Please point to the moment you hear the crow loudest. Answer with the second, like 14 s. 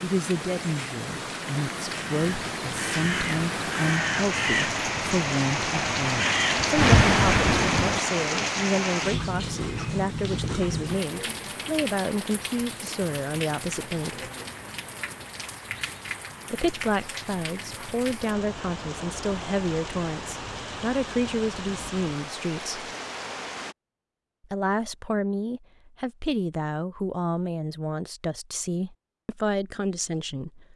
7 s.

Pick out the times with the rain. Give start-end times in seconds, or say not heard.
0.0-23.8.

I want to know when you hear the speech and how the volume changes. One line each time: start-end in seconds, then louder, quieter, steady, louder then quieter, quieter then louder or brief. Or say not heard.
0.0-14.3 steady
16.5-22.9 steady
24.5-30.7 steady.